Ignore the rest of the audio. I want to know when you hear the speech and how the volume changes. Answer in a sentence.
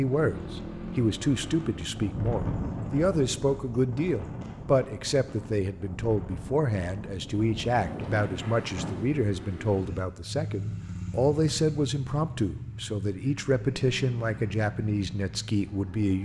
You can hear the speech from 0.0 to 16.1 s, at a steady volume.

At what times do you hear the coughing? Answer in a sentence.
You can't hear the coughing here.